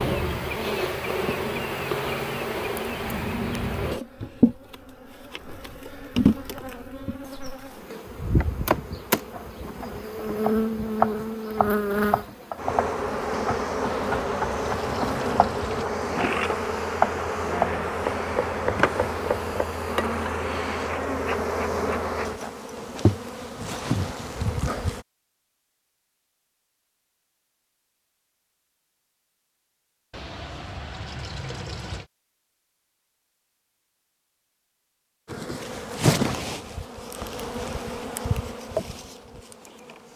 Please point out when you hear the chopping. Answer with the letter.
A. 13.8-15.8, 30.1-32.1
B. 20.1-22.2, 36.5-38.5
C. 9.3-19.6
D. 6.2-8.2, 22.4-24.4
C.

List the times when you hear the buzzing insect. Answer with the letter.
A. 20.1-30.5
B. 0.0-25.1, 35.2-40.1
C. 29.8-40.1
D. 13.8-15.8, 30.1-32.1
B.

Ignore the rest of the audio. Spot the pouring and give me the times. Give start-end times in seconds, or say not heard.
13.8-15.8, 30.1-32.1.